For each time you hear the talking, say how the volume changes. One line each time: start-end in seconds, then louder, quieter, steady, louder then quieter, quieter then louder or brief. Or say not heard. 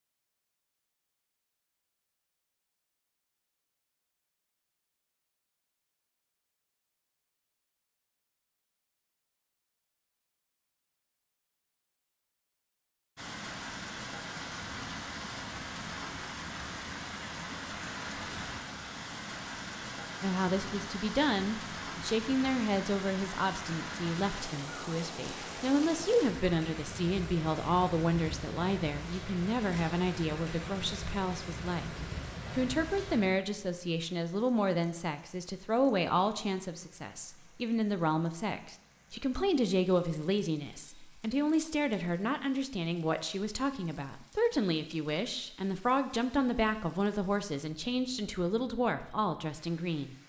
20.2-50.1 steady.